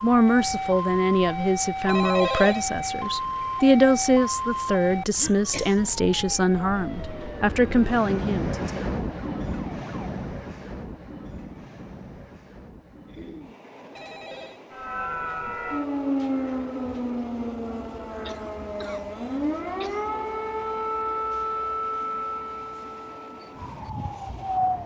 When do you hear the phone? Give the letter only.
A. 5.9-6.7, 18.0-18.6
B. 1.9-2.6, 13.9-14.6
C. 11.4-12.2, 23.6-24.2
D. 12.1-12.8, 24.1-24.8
B.